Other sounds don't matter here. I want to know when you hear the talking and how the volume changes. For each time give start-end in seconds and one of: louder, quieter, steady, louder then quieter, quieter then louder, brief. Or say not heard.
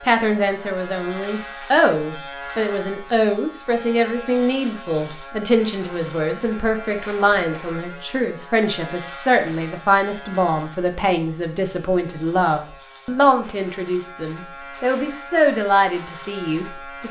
0.1-17.0 steady.